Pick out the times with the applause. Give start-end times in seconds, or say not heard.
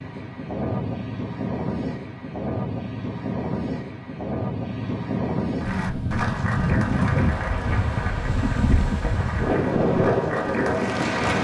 5.6-11.3.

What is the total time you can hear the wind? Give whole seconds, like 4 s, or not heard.
11 s.